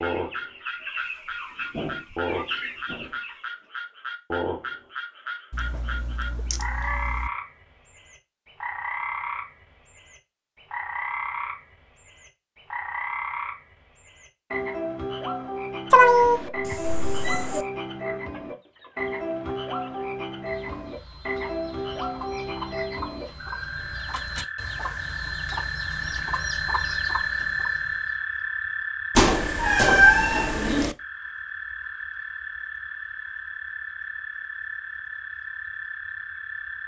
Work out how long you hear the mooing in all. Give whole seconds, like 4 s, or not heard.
not heard.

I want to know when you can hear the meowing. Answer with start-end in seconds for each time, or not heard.
5.5-7.3, 15.9-17.6, 29.1-30.9.